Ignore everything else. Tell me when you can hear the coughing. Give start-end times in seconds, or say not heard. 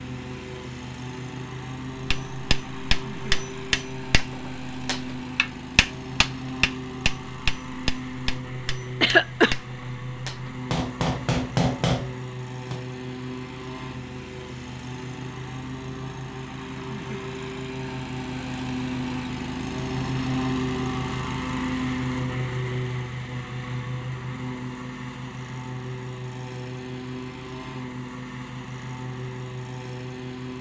9.0-9.6.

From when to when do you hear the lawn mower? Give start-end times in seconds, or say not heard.
0.0-30.5.